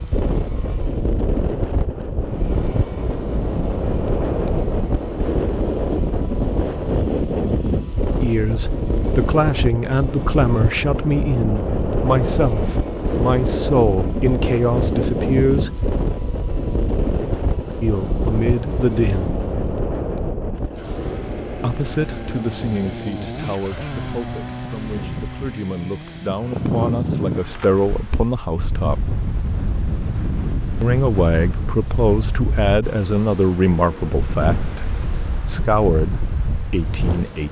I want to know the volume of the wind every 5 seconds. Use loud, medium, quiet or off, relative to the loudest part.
loud, loud, loud, loud, medium, loud, medium, medium.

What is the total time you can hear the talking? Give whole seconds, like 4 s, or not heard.
23 s.